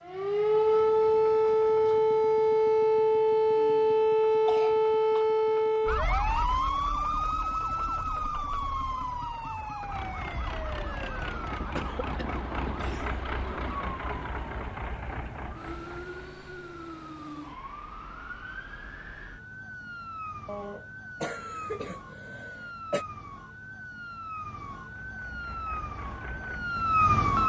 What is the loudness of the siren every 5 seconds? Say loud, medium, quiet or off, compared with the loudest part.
loud, medium, quiet, quiet, quiet, medium.